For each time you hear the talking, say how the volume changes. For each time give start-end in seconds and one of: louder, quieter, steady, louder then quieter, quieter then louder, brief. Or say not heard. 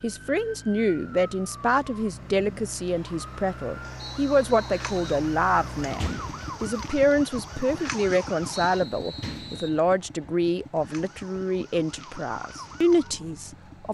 0.0-13.8 steady.